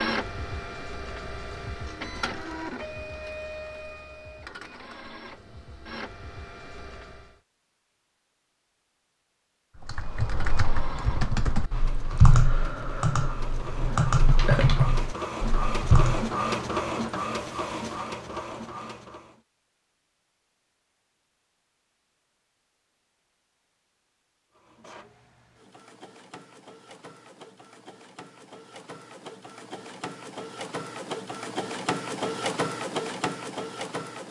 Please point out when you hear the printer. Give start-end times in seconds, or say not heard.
0.0-7.3, 10.1-19.4, 24.5-34.2.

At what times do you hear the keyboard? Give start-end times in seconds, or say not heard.
9.8-16.3.